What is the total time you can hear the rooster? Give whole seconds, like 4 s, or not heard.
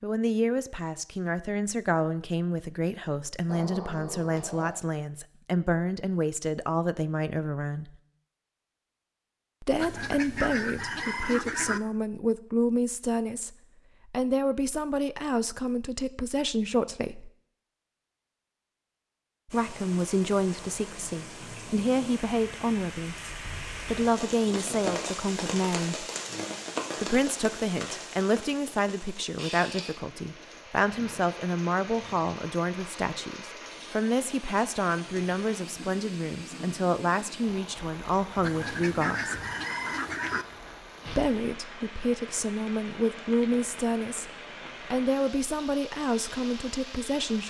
4 s.